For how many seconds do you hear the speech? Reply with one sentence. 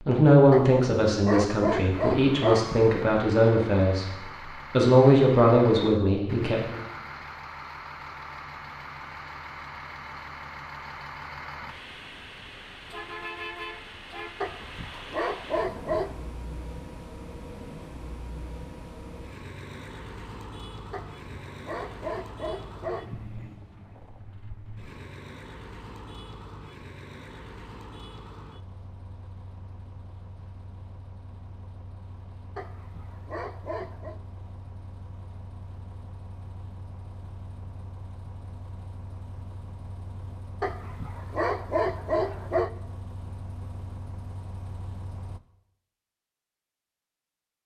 The speech can be heard for 6 seconds in total.